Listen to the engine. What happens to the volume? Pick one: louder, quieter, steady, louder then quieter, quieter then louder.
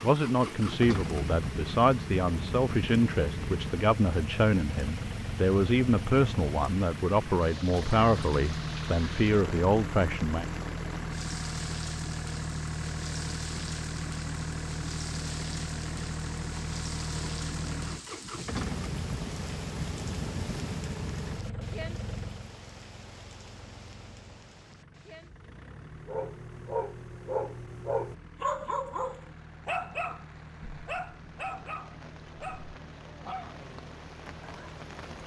quieter.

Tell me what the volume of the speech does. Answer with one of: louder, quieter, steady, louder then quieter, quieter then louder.
steady.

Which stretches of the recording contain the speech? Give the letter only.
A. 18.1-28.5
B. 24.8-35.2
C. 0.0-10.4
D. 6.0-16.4
C.